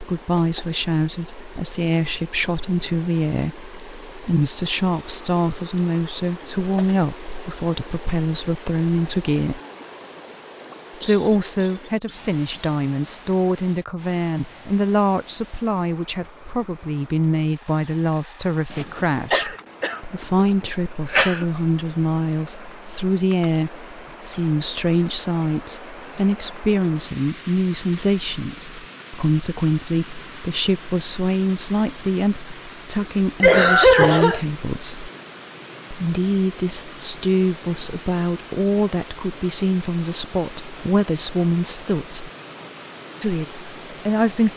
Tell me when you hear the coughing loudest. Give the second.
34 s.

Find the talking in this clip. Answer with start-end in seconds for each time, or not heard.
0.0-9.6, 10.9-35.1, 35.9-42.3, 43.2-44.5.